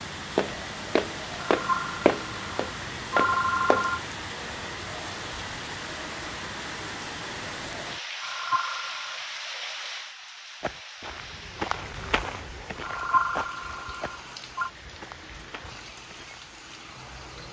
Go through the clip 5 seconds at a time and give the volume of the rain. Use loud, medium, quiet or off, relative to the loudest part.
loud, loud, medium, medium.